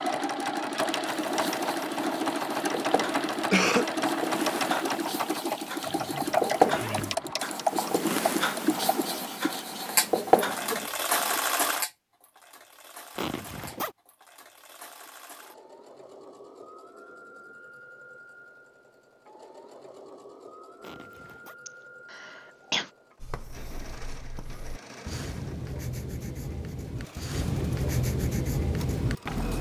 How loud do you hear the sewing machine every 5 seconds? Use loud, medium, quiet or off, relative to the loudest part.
loud, loud, medium, quiet, quiet, quiet.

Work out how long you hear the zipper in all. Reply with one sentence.
The zipper can be heard for 3 seconds in total.